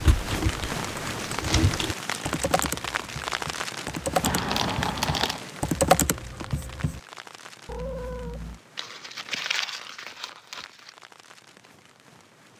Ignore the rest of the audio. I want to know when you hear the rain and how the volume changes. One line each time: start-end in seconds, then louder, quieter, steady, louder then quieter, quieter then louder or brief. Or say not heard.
0.0-12.5 quieter.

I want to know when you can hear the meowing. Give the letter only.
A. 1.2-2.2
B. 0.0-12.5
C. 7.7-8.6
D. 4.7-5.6
C.